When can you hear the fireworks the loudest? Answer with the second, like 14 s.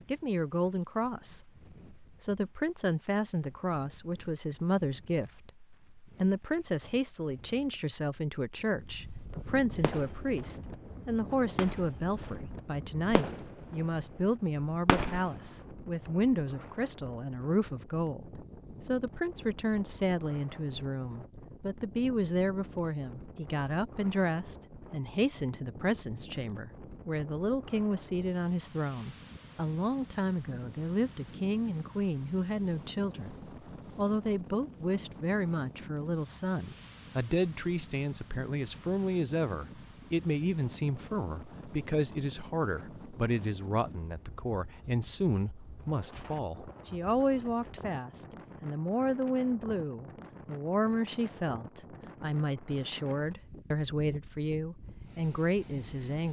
15 s.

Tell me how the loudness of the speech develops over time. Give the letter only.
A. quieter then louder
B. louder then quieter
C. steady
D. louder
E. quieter
C.